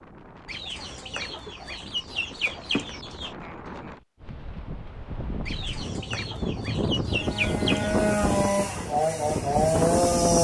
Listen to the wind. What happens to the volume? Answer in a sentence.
The volume of the wind goes up.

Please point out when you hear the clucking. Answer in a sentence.
You can hear the clucking from 0.5 to 3.4 s and from 5.5 to 8.0 s.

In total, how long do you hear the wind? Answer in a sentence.
You can hear the wind for 10 seconds altogether.